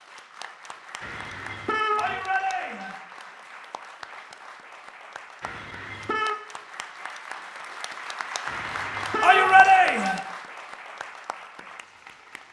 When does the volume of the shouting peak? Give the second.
10 s.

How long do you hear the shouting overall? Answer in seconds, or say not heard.
2 s.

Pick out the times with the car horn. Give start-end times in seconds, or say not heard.
1.0-2.2, 5.4-6.4, 8.4-9.7.